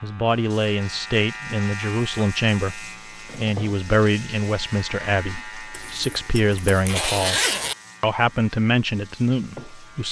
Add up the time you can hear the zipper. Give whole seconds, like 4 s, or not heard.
2 s.